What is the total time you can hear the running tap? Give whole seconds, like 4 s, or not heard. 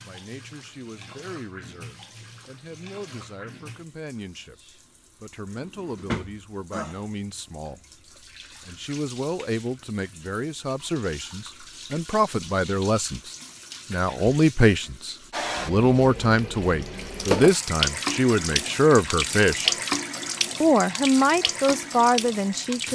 23 s.